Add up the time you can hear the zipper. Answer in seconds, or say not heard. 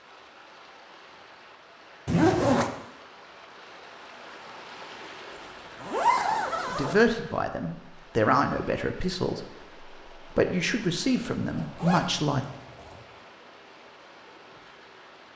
4 s.